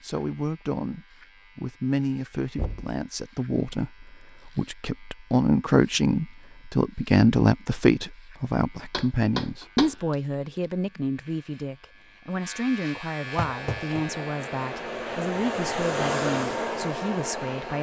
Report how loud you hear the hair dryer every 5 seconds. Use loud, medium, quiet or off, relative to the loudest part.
off, off, medium, loud.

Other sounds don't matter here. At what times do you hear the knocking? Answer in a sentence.
The knocking can be heard from 2.5 to 3.0 s, from 8.9 to 9.9 s and from 13.3 to 14.0 s.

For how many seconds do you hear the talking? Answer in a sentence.
The talking can be heard for 18 seconds in total.